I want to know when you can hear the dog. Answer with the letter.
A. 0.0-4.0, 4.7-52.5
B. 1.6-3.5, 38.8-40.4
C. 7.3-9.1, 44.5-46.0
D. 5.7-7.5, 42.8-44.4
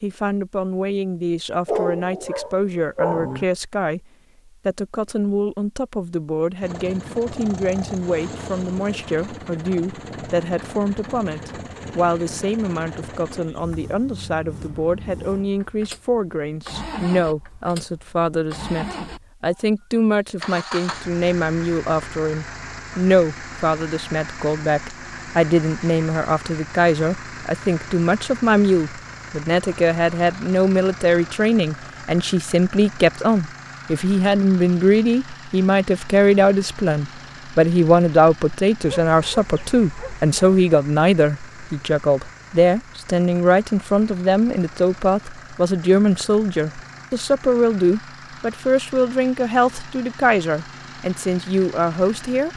B.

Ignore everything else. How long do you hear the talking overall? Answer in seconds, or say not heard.
52 s.